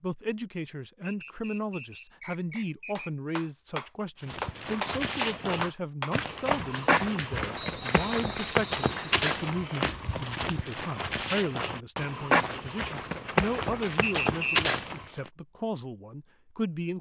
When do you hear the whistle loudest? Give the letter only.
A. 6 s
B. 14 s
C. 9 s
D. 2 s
B.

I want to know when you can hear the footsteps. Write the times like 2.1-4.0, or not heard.
4.2-15.3.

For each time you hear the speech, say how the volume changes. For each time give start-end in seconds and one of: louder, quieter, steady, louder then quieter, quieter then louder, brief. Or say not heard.
0.0-16.9 steady.